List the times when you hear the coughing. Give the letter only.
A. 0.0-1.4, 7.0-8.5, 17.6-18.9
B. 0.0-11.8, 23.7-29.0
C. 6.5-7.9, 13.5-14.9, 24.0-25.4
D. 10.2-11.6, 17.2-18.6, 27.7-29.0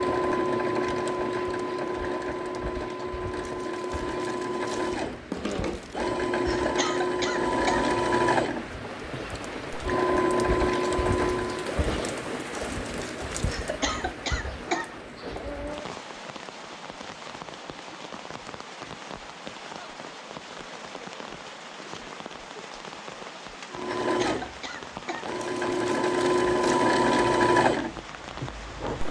C.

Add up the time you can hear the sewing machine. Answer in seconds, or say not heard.
17 s.